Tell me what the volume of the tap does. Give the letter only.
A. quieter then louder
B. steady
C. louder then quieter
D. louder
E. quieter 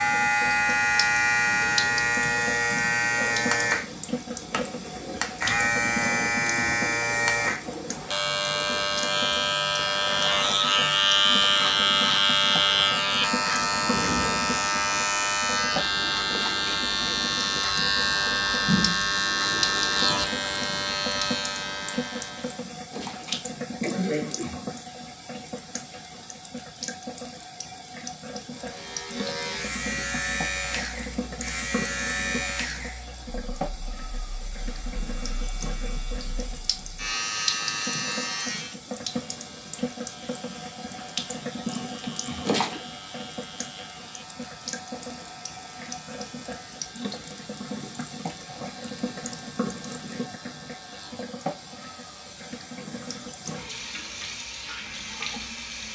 B.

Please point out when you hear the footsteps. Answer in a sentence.
You can't hear the footsteps here.